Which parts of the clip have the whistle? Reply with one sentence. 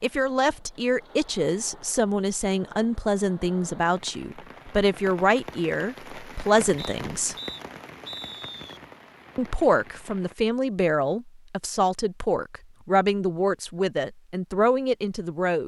You can hear the whistle from 6.8 to 8.8 s.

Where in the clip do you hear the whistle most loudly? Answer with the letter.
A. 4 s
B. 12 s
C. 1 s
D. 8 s
D.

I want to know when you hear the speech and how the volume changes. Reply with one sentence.
The speech can be heard from 0.0 to 7.3 s, at a steady volume; and from 9.3 to 15.6 s, at a steady volume.